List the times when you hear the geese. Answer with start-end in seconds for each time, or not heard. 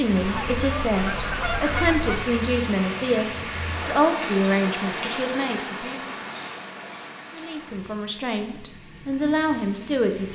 0.2-2.4.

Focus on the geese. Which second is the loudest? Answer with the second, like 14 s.
2 s.